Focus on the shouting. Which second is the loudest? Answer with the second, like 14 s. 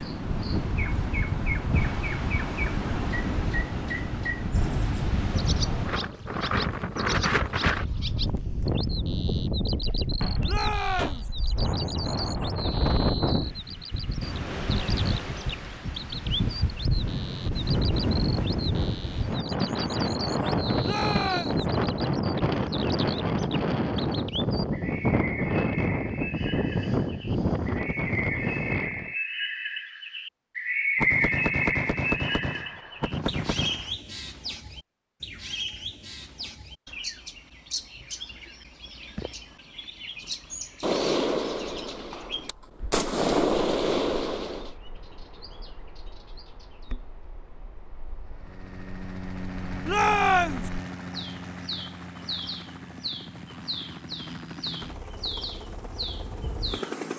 50 s.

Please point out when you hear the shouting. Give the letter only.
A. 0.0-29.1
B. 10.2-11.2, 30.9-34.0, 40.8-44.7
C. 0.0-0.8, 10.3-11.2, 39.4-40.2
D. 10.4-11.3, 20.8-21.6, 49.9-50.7
D.